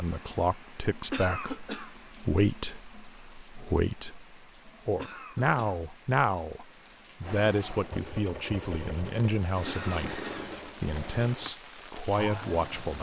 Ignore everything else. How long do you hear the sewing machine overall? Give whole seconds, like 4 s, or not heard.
6 s.